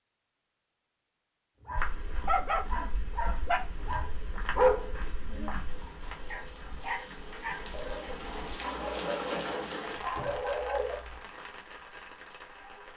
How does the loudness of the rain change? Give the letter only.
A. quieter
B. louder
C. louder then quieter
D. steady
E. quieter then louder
C.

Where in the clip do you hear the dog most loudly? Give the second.
5 s.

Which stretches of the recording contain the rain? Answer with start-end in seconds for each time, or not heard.
5.5-12.9.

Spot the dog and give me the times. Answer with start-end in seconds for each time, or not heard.
1.6-11.0.